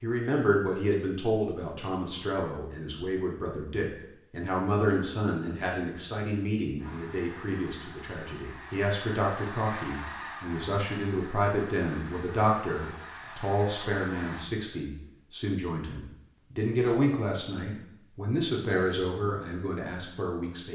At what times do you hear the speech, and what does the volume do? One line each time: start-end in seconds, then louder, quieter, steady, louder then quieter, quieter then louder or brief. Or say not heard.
0.0-20.7 steady.